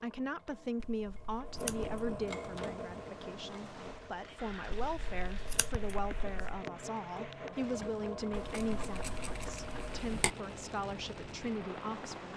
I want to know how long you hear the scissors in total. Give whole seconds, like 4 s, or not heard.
5 s.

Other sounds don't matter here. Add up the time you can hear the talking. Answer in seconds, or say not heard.
12 s.